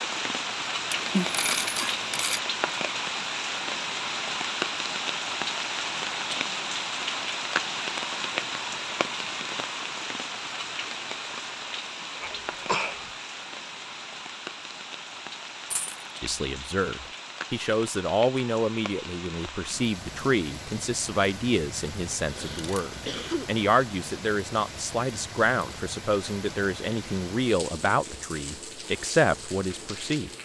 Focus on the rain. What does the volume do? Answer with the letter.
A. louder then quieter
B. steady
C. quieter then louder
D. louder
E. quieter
E.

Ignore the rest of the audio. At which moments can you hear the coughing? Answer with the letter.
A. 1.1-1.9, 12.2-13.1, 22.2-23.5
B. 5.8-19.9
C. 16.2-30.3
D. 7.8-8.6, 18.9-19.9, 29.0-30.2
A.